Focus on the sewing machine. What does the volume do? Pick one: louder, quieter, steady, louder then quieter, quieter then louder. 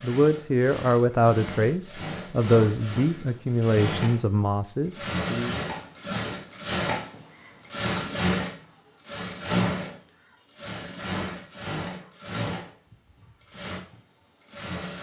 louder then quieter.